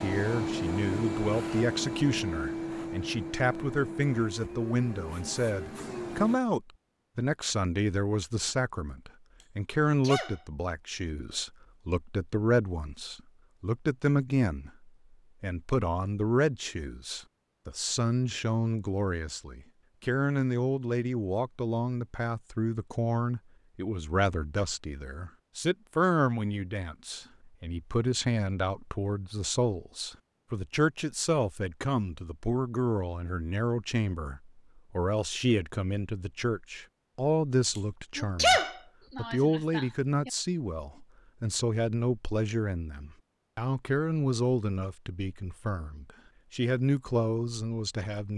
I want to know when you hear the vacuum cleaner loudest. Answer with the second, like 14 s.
1 s.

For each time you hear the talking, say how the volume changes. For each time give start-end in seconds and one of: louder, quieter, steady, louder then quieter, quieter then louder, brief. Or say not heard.
0.0-48.3 steady.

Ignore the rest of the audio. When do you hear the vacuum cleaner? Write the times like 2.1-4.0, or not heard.
0.0-6.4.